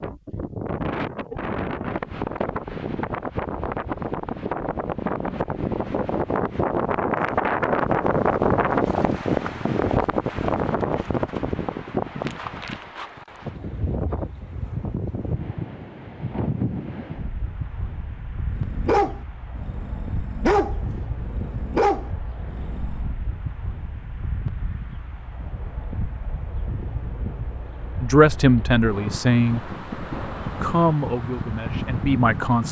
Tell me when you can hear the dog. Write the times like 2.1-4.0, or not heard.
18.6-23.1.